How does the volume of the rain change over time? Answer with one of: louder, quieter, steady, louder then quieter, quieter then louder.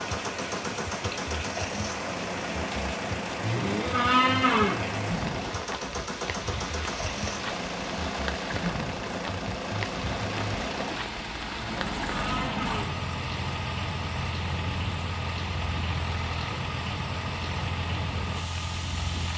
steady.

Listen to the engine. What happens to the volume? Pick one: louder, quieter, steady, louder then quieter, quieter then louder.
steady.